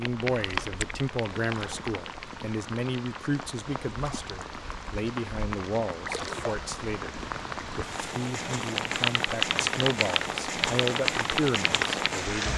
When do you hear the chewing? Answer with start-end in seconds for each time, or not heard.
not heard.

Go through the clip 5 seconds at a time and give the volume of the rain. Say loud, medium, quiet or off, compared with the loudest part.
medium, loud, loud.